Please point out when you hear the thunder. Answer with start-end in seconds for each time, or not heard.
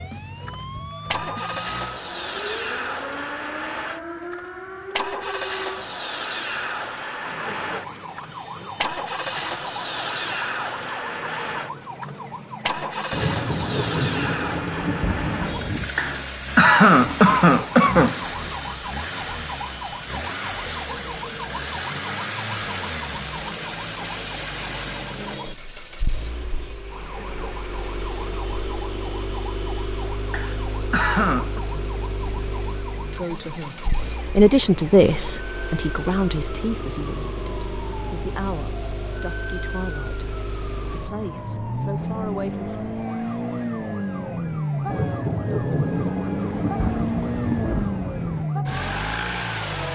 13.1-15.9, 44.9-48.5.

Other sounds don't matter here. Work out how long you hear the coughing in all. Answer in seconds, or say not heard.
4 s.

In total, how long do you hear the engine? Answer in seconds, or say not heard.
50 s.